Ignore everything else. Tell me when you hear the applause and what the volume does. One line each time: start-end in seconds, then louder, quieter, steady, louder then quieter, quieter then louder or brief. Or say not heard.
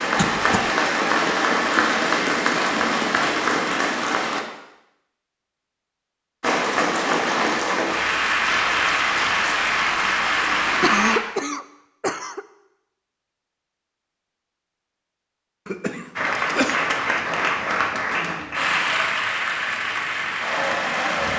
0.0-4.5 steady
6.4-11.2 steady
16.1-21.3 steady.